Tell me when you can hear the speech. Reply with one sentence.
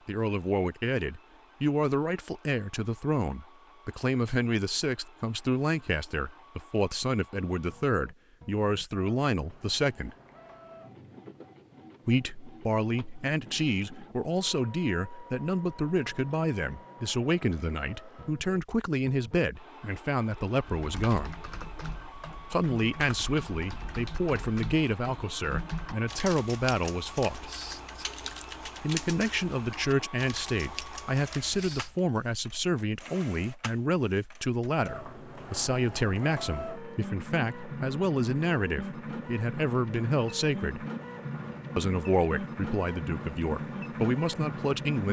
The speech can be heard from 0.1 to 10.2 s, from 12.1 to 21.4 s, from 22.5 to 27.5 s, from 28.8 to 40.9 s and from 41.8 to 45.0 s.